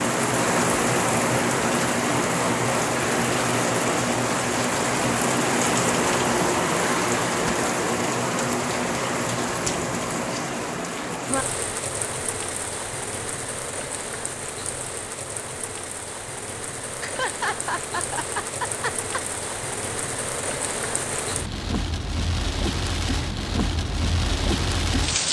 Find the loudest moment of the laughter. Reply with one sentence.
The loudest moment of the laughter is at 17 seconds.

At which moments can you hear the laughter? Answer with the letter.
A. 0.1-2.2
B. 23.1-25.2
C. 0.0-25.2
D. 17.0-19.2
D.